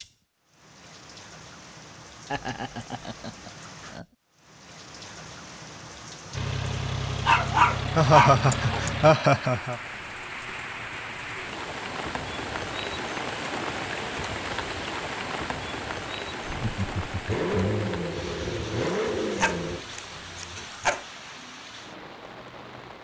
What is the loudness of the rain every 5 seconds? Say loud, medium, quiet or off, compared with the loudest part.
quiet, medium, loud, loud, medium.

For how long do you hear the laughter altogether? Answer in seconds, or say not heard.
5 s.